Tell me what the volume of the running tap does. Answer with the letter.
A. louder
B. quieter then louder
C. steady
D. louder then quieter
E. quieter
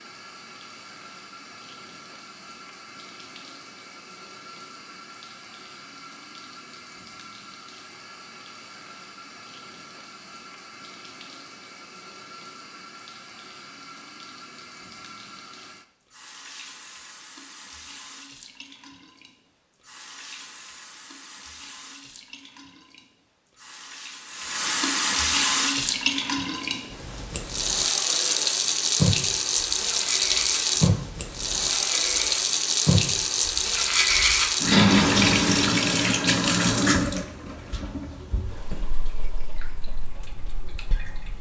A.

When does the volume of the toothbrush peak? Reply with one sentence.
The volume of the toothbrush peaks at 35 seconds.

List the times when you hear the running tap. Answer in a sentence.
You can hear the running tap from 0.0 to 41.3 s.